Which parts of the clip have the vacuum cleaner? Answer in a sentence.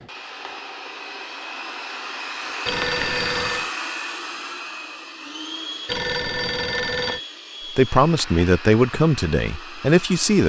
You can hear the vacuum cleaner from 0.0 to 10.4 s.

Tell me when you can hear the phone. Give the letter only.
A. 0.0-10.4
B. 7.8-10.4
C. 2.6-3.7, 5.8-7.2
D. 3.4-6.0
C.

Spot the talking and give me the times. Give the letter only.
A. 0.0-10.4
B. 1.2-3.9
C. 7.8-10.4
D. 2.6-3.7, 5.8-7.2
C.